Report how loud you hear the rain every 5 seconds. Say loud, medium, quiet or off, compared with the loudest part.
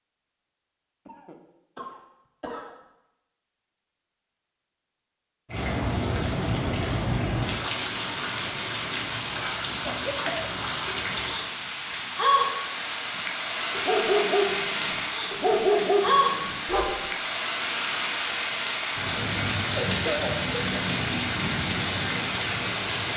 off, loud, loud, loud, loud.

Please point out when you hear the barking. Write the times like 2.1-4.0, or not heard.
13.7-16.9.